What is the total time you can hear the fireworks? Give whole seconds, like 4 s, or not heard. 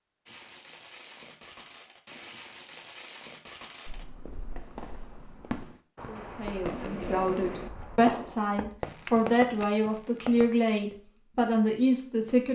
10 s.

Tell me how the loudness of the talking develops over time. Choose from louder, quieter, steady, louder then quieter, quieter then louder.
louder.